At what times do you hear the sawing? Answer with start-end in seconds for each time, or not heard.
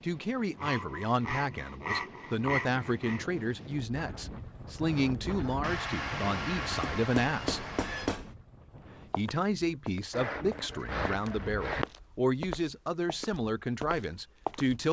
0.6-3.2, 5.6-8.2, 10.1-11.8.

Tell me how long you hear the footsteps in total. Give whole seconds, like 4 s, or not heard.
6 s.